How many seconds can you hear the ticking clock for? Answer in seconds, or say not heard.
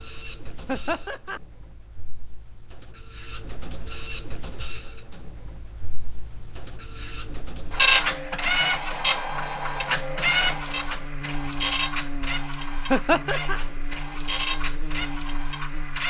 not heard.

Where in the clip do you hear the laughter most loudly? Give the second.
13 s.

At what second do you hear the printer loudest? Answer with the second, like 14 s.
8 s.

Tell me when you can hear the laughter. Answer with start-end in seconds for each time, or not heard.
0.7-1.4, 12.9-13.6.